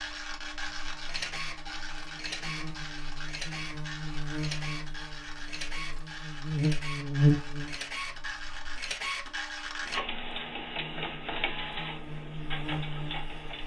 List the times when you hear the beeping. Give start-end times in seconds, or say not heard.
not heard.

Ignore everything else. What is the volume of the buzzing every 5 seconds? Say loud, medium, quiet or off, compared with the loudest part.
medium, loud, medium.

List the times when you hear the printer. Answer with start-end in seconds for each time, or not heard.
0.0-13.6.